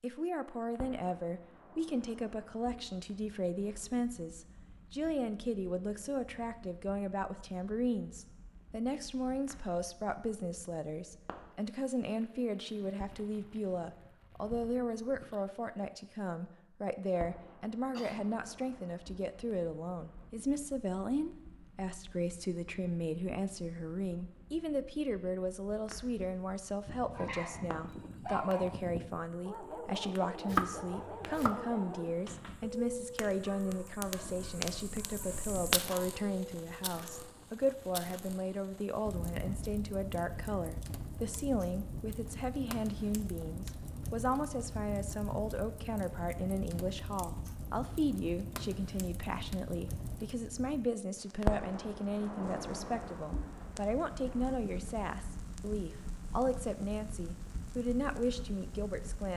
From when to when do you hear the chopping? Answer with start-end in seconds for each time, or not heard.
30.4-31.6.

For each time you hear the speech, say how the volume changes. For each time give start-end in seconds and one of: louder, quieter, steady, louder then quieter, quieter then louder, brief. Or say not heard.
0.0-59.3 steady.